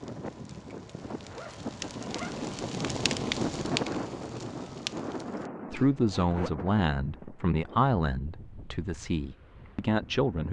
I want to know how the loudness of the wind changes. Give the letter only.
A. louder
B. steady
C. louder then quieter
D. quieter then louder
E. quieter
C.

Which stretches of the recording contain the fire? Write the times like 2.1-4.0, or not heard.
0.0-5.5.